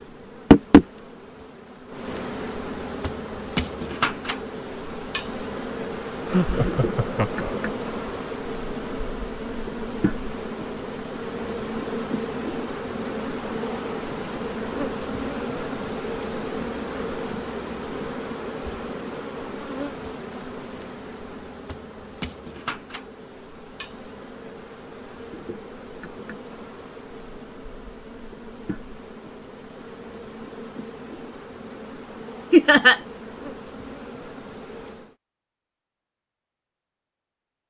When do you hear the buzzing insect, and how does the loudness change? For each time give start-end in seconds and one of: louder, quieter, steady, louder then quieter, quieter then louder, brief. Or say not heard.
0.0-35.1 quieter.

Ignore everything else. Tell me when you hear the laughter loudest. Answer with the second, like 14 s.
33 s.